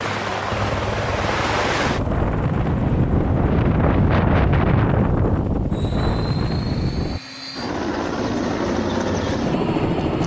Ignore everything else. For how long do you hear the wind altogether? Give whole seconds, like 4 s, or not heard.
7 s.